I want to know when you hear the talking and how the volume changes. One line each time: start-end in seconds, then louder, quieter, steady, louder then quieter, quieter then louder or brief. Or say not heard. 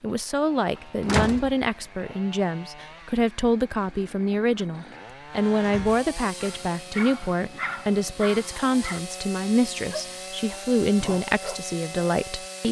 0.0-12.6 steady.